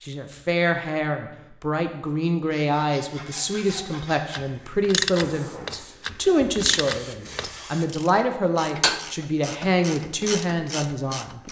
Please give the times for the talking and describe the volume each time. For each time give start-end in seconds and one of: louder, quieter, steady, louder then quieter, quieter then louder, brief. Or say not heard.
0.0-11.4 steady.